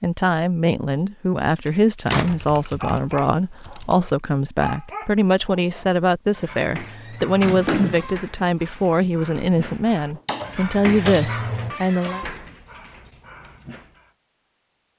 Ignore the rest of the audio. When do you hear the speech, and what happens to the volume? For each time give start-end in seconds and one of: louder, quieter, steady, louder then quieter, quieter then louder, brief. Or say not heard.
0.0-12.2 steady.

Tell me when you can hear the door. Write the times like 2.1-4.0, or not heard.
1.6-2.5, 7.4-8.1, 10.2-11.3.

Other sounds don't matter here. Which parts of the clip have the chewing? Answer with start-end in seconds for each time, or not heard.
not heard.